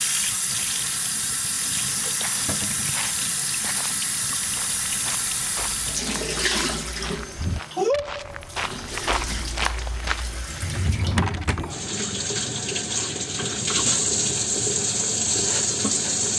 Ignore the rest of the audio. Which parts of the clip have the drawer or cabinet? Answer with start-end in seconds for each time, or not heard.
2.5-3.0, 10.4-11.8.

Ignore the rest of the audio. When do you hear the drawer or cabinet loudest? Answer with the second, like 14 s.
11 s.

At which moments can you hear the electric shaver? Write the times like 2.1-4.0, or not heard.
not heard.